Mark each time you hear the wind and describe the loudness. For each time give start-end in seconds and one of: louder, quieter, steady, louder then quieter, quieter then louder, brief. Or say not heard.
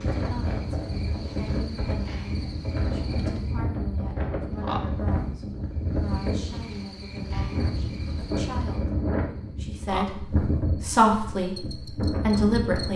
0.0-12.9 steady.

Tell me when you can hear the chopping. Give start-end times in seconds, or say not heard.
not heard.